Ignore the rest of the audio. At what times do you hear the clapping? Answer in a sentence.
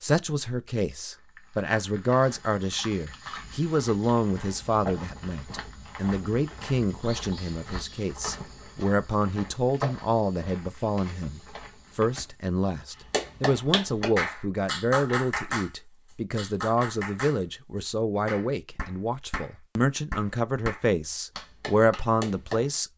The clapping can be heard from 13.1 to 15.7 s, from 16.4 to 17.4 s and from 18.2 to 22.6 s.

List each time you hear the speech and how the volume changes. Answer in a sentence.
The speech can be heard from 0.0 to 22.9 s, at a steady volume.